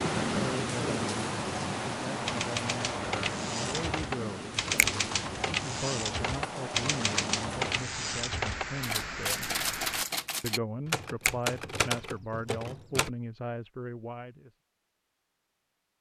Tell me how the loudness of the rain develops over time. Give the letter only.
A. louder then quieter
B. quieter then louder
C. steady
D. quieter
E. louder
D.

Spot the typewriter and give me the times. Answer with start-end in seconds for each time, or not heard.
2.2-13.1.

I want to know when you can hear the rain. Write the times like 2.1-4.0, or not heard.
0.0-10.1.